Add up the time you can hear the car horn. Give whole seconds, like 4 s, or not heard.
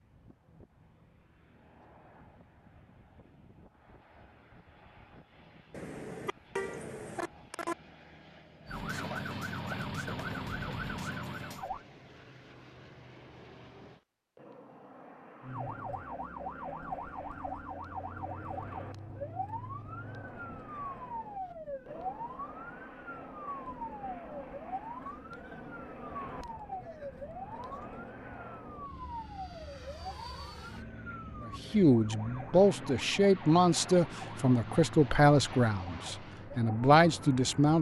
2 s.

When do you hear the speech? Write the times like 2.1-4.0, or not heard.
31.4-37.7.